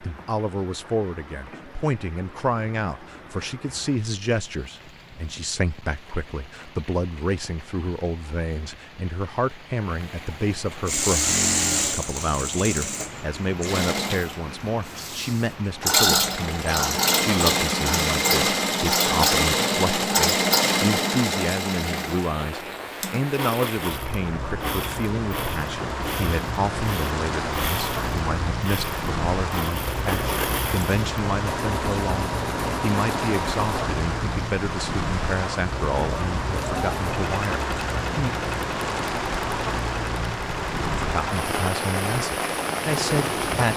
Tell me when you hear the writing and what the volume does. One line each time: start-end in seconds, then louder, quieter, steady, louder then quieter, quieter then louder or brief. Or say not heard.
not heard.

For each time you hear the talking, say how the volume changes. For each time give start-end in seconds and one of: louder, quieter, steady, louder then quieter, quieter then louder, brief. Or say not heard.
0.0-38.4 steady
41.0-43.7 brief.